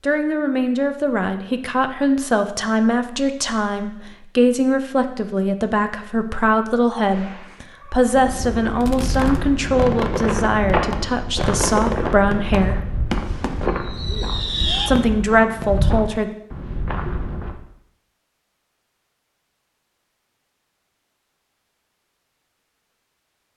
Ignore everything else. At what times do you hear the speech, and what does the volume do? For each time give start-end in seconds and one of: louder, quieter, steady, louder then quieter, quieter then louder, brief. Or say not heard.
0.0-12.8 steady
14.8-16.3 brief.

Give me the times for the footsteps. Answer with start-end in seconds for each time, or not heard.
8.1-17.6.